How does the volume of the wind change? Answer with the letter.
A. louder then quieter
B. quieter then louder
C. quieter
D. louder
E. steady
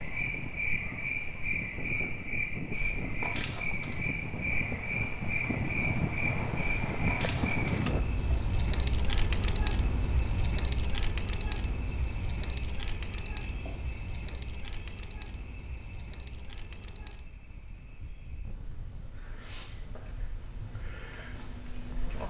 A.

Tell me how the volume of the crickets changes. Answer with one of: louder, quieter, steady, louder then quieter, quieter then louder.
quieter.